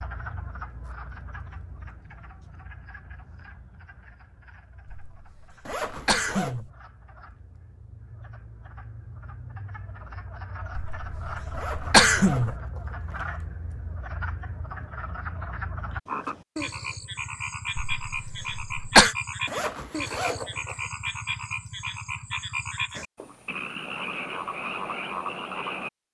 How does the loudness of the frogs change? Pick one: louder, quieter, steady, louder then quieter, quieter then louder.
louder.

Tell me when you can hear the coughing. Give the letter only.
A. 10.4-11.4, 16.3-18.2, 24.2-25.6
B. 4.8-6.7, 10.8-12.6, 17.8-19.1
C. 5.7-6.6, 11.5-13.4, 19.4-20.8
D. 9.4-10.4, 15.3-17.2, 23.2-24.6
B.